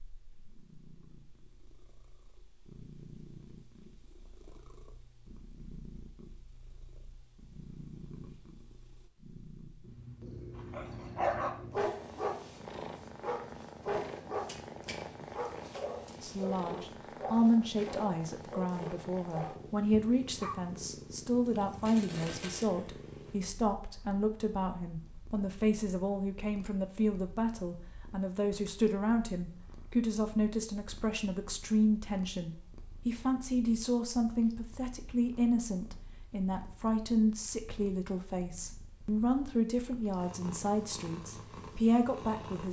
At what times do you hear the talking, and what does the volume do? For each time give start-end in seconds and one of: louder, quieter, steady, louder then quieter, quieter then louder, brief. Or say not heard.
16.2-42.6 steady.